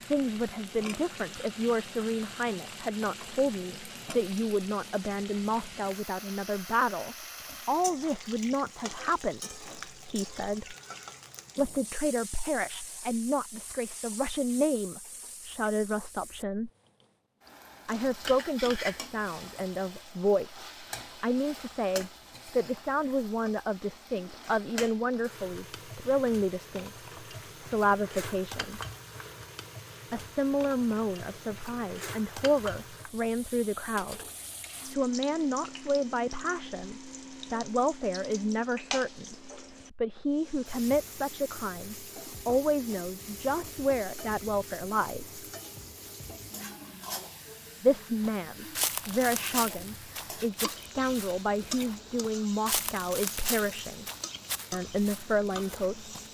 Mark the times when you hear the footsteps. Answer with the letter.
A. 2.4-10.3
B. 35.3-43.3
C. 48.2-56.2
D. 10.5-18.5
C.